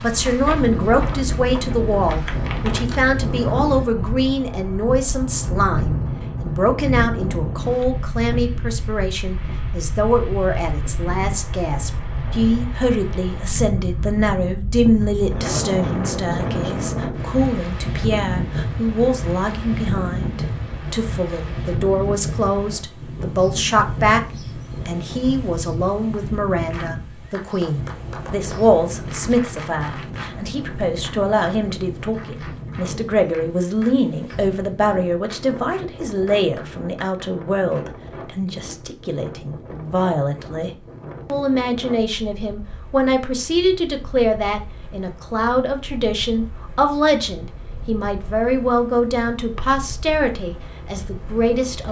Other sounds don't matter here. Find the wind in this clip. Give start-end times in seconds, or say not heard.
0.0-51.8.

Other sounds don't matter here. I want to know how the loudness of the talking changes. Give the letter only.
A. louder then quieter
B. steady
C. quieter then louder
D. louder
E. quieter
B.